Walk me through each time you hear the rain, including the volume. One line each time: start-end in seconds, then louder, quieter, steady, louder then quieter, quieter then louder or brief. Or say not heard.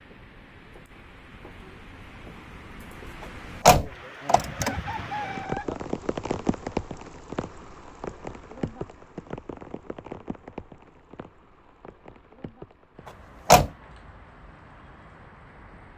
0.0-15.9 louder then quieter.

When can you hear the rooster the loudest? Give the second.
5 s.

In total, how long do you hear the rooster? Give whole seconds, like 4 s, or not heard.
2 s.